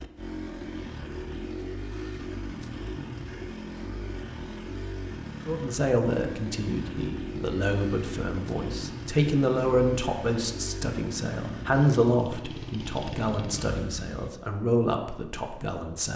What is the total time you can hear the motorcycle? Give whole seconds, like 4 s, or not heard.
14 s.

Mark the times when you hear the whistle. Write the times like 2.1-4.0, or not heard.
not heard.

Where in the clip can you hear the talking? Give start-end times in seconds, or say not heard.
5.5-16.1.